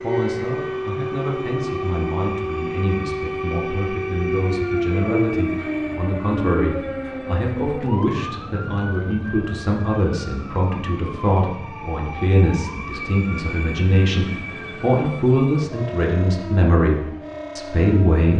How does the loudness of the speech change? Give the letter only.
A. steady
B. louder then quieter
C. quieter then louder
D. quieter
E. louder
E.